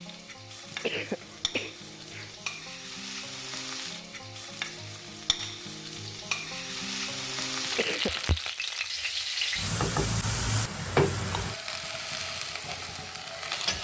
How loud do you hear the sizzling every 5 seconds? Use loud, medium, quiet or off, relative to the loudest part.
medium, loud, loud.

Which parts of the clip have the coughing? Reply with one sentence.
You can hear the coughing from 0.7 to 2.4 s and from 7.7 to 8.3 s.